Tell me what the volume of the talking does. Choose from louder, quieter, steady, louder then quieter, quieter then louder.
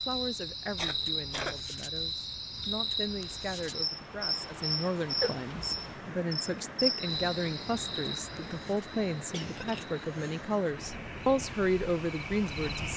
louder.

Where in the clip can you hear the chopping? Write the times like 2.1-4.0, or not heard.
not heard.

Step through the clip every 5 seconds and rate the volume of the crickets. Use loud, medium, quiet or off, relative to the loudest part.
loud, loud, medium.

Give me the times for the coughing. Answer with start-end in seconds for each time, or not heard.
0.8-1.6, 5.2-6.0, 9.3-10.4.